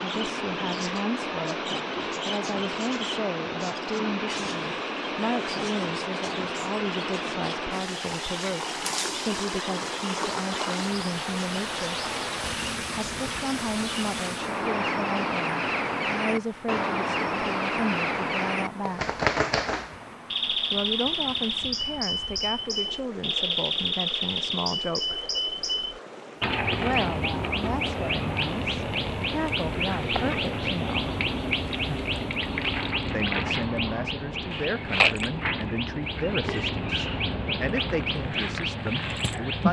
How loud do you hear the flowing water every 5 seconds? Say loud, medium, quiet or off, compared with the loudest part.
loud, loud, loud, quiet, quiet, quiet, quiet, off.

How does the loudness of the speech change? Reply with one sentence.
The loudness of the speech stays about the same.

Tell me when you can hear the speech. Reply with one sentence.
The speech can be heard from 0.0 to 12.0 s, from 12.9 to 19.2 s, from 20.7 to 25.2 s, from 26.8 to 31.1 s and from 33.1 to 39.6 s.